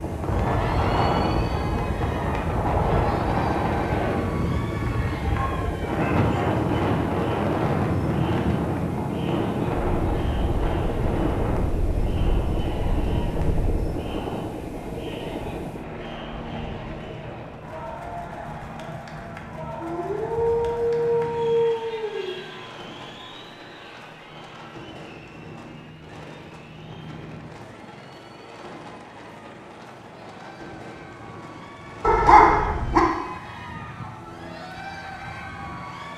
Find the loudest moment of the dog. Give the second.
32 s.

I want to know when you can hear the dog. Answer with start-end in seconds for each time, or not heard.
5.3-6.7, 19.8-22.4, 32.0-33.0.